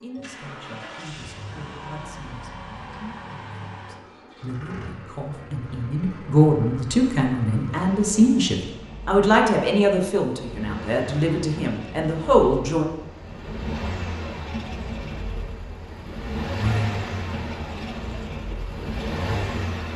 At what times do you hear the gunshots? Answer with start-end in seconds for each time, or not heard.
not heard.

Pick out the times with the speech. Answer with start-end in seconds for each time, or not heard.
0.0-12.8.